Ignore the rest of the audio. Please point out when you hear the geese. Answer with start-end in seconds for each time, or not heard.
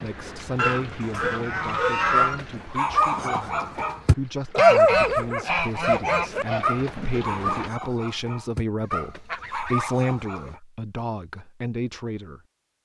0.6-2.5, 4.5-6.7, 8.8-10.6.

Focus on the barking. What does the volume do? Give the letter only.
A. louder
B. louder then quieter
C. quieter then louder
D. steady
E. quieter
B.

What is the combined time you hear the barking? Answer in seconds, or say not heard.
10 s.